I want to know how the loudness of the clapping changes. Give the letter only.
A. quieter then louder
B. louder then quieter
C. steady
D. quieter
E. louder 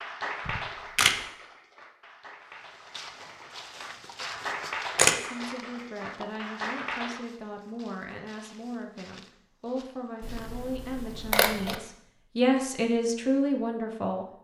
A.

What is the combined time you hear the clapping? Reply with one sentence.
The clapping can be heard for 7 seconds in total.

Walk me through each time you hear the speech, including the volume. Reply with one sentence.
The speech can be heard from 5.2 to 14.2 s, getting louder.